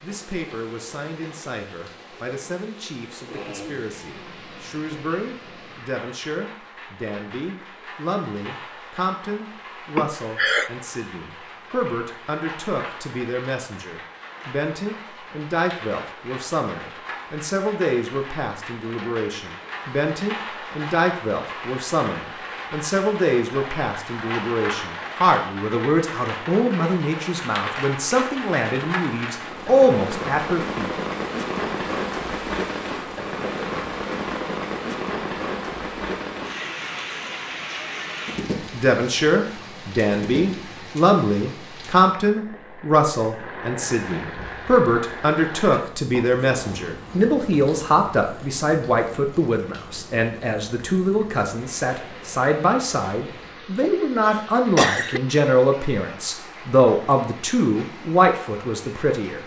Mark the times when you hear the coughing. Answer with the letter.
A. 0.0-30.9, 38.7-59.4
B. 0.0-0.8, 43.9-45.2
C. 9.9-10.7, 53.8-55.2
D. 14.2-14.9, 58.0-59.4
C.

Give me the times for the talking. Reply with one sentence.
You can hear the talking from 0.0 to 30.9 s and from 38.7 to 59.4 s.